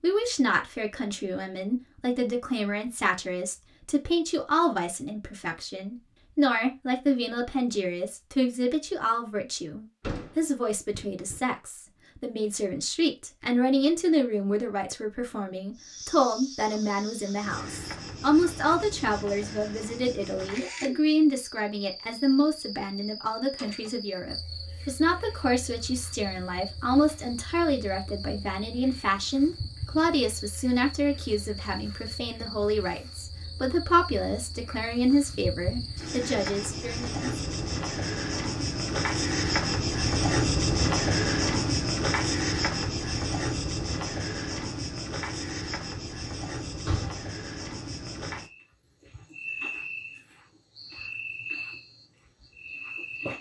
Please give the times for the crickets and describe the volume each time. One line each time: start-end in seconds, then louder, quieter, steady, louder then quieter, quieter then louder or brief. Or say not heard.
15.8-53.3 louder then quieter.